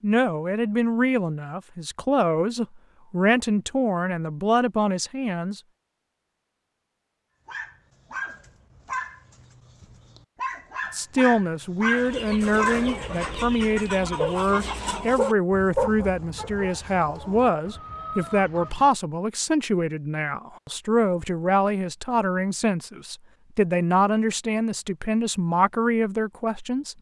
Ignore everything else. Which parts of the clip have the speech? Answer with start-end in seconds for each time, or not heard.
0.0-5.6, 10.9-26.9.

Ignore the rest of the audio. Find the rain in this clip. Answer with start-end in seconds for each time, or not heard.
not heard.